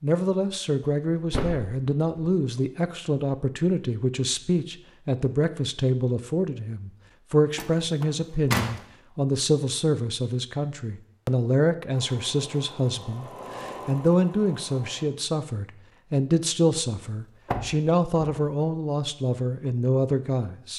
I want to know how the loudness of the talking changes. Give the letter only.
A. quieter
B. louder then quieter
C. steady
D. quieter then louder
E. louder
C.